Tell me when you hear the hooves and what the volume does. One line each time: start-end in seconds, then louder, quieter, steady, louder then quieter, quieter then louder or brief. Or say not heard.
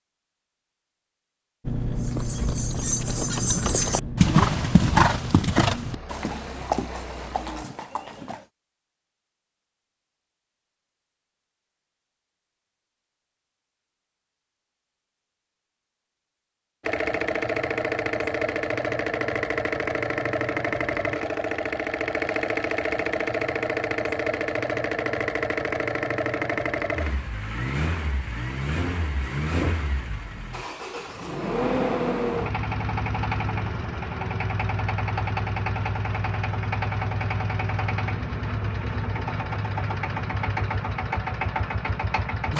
1.9-8.4 louder then quieter.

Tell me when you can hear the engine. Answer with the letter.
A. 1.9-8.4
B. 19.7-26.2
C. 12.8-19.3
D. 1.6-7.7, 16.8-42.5
D.